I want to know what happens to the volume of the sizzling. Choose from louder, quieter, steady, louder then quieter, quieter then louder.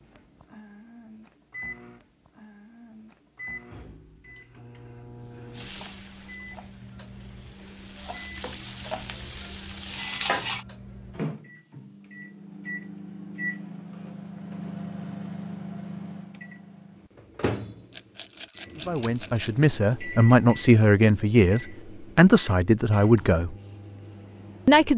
quieter then louder.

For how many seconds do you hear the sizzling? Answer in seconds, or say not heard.
5 s.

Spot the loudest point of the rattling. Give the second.
19 s.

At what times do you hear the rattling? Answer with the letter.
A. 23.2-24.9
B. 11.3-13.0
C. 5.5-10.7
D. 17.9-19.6
D.